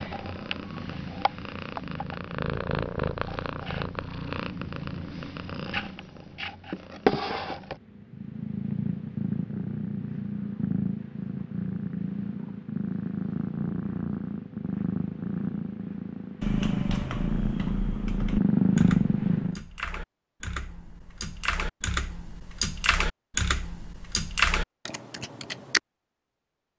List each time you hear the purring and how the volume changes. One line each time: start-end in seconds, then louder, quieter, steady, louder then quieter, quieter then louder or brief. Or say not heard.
0.0-19.6 louder.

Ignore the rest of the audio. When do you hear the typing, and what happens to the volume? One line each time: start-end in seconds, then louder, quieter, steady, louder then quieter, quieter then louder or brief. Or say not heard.
16.4-25.8 louder.